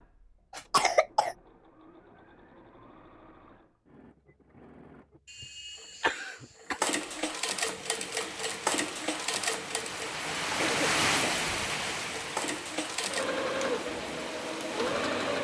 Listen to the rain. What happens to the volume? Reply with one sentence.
The loudness of the rain goes up, then down.